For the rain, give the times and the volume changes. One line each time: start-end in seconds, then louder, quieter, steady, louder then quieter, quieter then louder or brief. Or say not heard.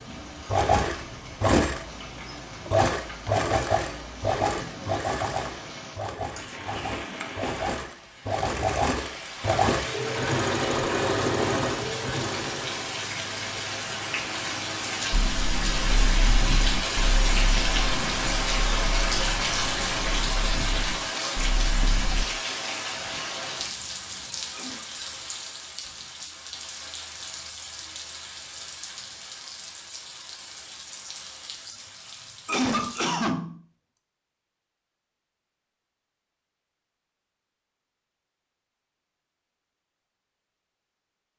0.0-33.1 louder then quieter.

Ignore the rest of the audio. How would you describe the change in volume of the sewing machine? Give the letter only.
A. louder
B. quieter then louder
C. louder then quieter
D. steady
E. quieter
B.